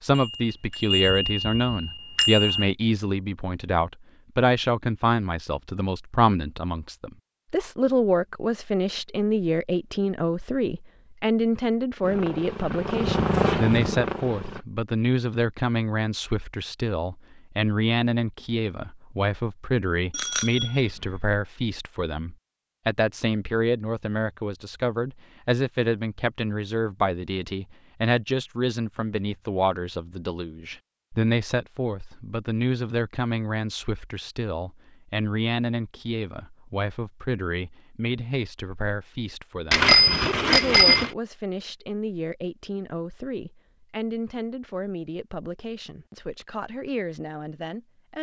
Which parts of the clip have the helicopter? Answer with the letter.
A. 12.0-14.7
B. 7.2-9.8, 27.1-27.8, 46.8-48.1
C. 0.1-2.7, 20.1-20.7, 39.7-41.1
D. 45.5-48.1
A.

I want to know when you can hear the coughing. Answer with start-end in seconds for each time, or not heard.
not heard.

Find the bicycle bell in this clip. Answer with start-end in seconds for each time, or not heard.
0.1-2.7, 20.1-20.7, 39.7-41.1.